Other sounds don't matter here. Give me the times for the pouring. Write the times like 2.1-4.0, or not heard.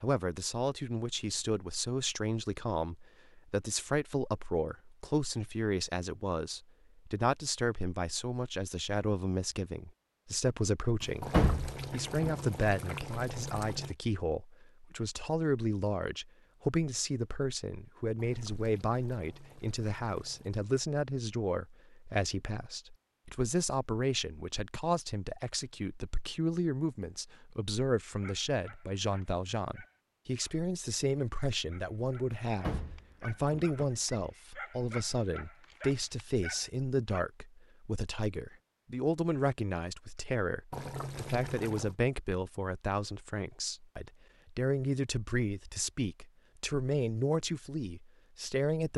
11.2-13.9, 18.1-20.6, 40.7-42.0.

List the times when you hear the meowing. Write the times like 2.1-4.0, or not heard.
not heard.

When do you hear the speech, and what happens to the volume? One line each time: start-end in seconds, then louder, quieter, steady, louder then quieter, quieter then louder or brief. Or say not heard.
0.0-48.9 steady.